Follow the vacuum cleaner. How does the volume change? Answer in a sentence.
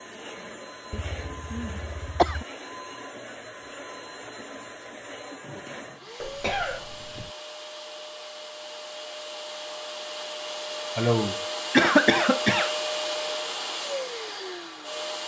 The volume of the vacuum cleaner goes up.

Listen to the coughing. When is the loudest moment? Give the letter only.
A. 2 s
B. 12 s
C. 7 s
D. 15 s
B.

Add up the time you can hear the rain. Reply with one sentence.
The rain can't be heard in this clip.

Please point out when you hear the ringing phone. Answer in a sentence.
The ringing phone can be heard from 5.4 to 6.2 s.